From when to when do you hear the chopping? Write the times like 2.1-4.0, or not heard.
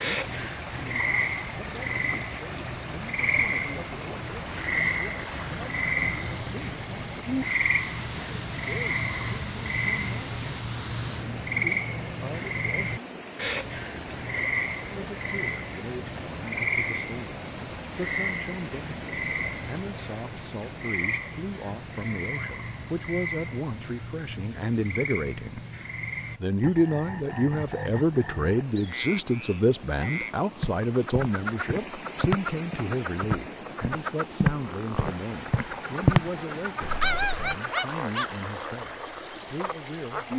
not heard.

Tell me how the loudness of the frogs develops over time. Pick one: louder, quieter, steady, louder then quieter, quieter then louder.
quieter.